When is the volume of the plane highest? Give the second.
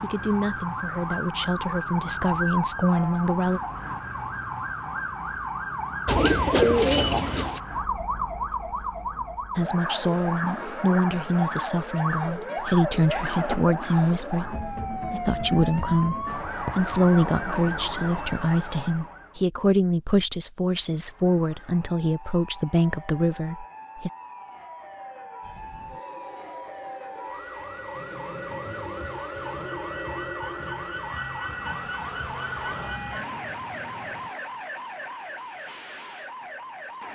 30 s.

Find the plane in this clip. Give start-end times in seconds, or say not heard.
25.4-34.3.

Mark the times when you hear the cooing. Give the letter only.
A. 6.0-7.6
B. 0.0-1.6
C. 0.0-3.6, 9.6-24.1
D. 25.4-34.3
A.